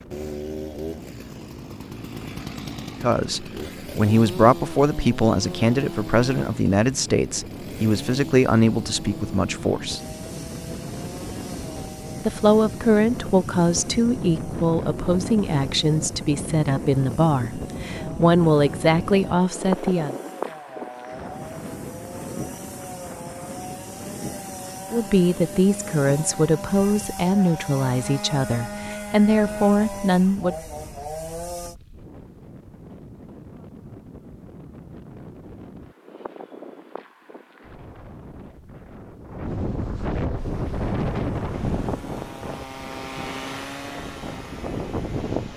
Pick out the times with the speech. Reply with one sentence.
The speech can be heard from 3.0 to 10.0 s, from 12.2 to 20.1 s and from 24.9 to 30.6 s.